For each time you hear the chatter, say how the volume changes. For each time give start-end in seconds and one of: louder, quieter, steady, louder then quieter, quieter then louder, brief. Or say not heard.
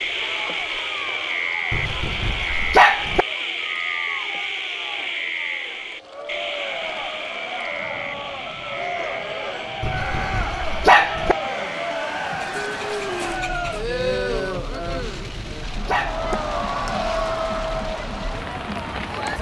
0.0-19.3 louder.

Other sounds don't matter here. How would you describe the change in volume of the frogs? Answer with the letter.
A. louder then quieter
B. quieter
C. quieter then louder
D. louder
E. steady
B.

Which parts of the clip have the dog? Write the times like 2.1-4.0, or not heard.
1.7-3.2, 9.8-11.3, 15.1-16.4.